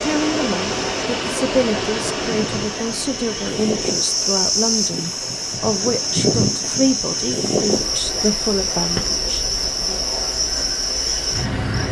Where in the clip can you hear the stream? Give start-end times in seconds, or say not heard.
0.0-11.8.